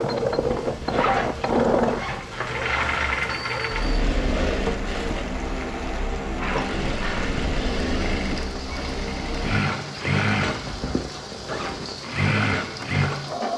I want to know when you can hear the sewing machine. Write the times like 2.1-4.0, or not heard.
0.0-13.5.